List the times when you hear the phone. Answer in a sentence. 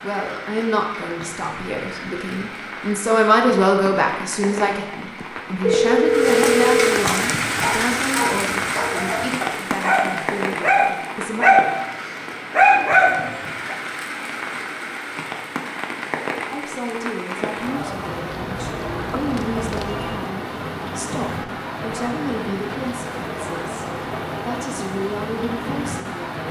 You can hear the phone from 5.2 to 6.9 s and from 18.3 to 20.2 s.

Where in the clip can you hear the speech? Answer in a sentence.
You can hear the speech from 0.0 to 11.4 s and from 16.5 to 26.4 s.